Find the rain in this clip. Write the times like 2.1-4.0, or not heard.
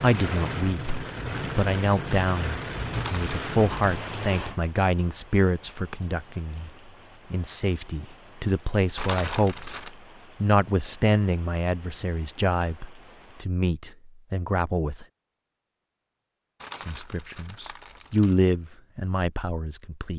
0.0-13.4.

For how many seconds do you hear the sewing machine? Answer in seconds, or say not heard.
not heard.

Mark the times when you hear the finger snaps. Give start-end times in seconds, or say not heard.
not heard.